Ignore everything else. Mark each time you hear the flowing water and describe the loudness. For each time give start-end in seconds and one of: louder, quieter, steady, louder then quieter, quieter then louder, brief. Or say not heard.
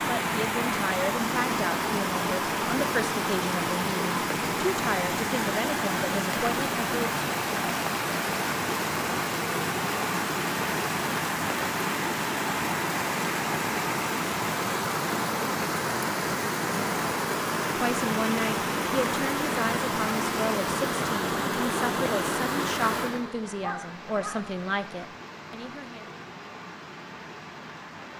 0.0-28.1 quieter.